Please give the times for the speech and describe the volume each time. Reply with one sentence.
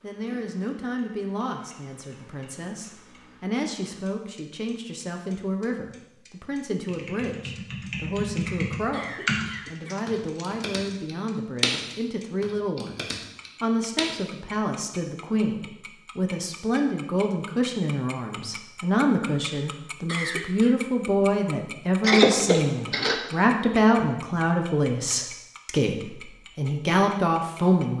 The speech can be heard from 0.0 to 27.9 s, getting louder.